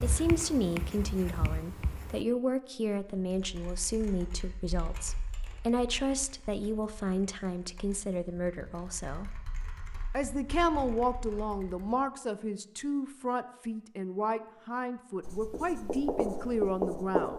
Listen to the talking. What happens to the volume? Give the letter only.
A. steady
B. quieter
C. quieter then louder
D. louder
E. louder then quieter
A.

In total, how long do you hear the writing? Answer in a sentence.
You can hear the writing for 4 seconds altogether.